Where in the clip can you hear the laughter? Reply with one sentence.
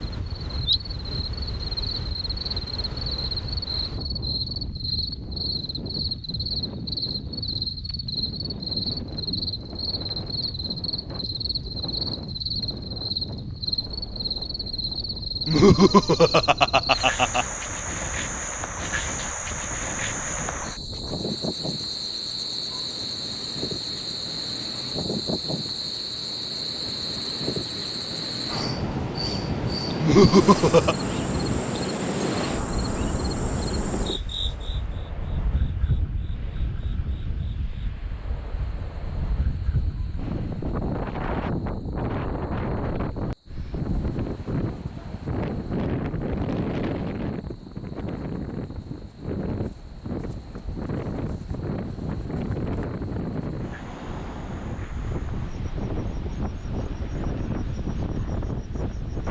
You can hear the laughter from 15.4 to 17.4 s and from 30.0 to 30.9 s.